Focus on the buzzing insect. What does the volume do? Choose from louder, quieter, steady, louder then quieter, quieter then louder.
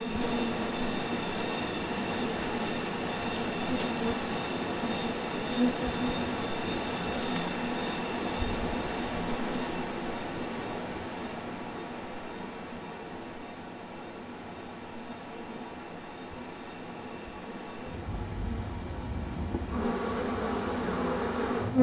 quieter then louder.